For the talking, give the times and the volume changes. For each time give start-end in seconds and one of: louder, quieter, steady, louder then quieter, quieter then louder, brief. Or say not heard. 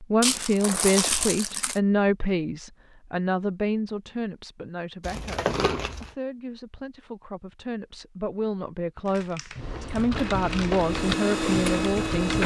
0.0-12.4 quieter then louder.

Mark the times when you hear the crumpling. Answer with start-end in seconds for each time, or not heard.
0.2-1.8, 5.0-6.1, 9.1-10.8.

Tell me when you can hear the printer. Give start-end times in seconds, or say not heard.
10.1-12.4.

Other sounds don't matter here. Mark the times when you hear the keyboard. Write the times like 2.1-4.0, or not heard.
9.6-12.4.